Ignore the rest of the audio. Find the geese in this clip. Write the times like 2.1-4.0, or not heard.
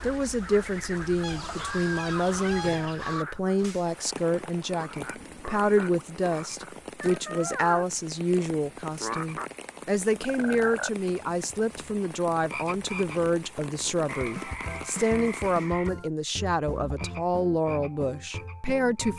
1.2-3.2.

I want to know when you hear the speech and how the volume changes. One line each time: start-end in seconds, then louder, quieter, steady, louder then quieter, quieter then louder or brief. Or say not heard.
0.0-19.1 steady.